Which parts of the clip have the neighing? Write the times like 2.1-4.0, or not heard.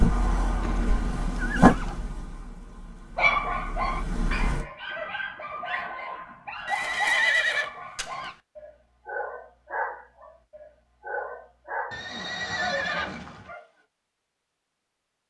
0.6-2.1, 6.7-8.3, 11.9-13.5.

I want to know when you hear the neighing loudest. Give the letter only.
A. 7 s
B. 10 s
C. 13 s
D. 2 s
A.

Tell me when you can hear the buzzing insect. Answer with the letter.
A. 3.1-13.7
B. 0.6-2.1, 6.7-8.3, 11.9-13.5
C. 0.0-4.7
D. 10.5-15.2
C.